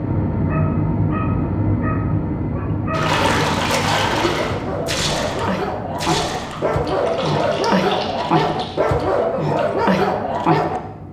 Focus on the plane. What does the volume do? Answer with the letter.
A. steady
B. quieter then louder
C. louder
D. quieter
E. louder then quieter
D.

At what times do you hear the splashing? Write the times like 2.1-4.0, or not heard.
2.9-9.1.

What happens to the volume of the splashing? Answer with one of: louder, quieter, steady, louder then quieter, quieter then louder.
quieter.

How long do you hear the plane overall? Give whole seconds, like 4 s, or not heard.
11 s.